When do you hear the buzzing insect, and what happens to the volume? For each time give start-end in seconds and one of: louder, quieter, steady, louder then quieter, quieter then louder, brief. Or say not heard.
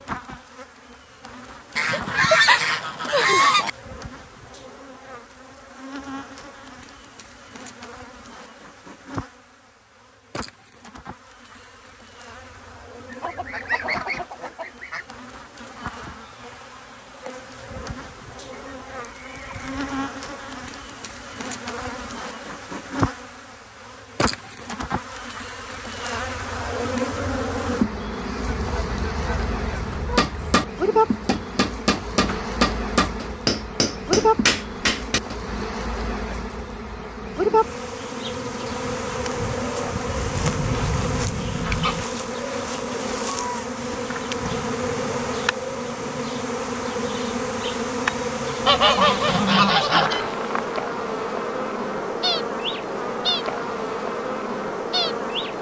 0.0-55.5 louder.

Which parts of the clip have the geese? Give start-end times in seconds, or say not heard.
1.8-3.7, 13.1-15.1, 18.5-20.1, 28.4-30.7, 40.0-42.0, 48.6-50.2.